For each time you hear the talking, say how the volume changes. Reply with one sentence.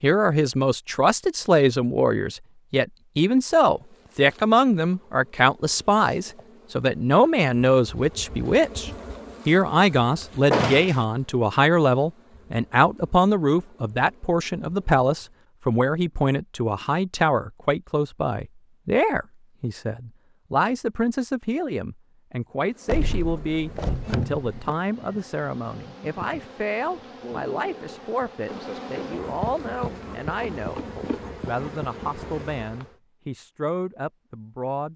The talking can be heard from 0.0 to 34.9 s, getting quieter.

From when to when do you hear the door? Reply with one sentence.
The door can be heard from 10.5 to 11.0 s and from 22.9 to 24.8 s.